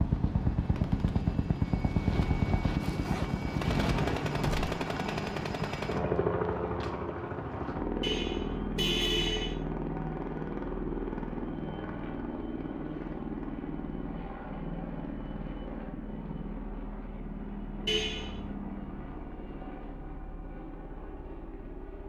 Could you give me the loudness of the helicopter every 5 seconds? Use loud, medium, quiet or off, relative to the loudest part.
loud, loud, medium, medium, quiet.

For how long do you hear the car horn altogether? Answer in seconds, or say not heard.
2 s.